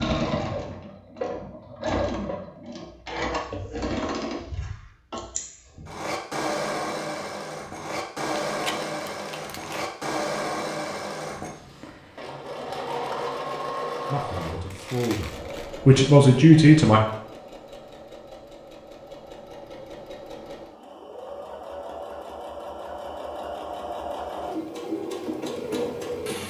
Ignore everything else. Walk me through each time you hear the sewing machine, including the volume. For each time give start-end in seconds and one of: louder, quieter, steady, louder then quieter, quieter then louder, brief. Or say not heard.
0.0-26.4 quieter then louder.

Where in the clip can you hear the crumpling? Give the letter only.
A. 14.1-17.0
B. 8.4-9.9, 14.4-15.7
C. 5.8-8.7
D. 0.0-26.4
B.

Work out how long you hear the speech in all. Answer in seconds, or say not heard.
3 s.